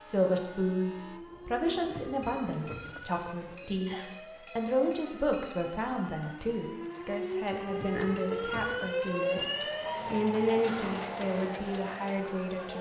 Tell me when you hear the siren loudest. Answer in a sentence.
The loudest moment of the siren is at 9 seconds.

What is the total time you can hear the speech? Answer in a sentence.
You can hear the speech for 13 seconds altogether.